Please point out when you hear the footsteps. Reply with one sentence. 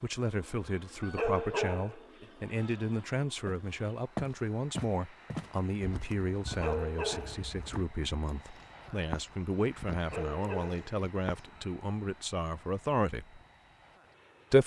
The footsteps can be heard from 3.5 to 11.4 s.